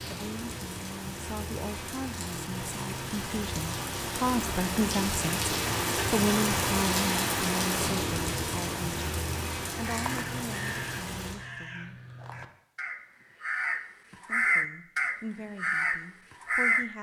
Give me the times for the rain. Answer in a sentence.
You can hear the rain from 0.0 to 11.4 s.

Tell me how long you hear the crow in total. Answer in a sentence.
The crow can be heard for 7 seconds in total.